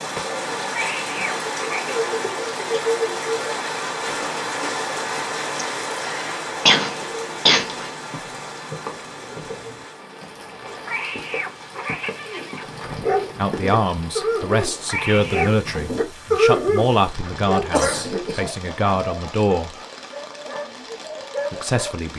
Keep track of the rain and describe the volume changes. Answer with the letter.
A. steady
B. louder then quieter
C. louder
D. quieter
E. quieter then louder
D.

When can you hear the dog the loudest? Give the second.
16 s.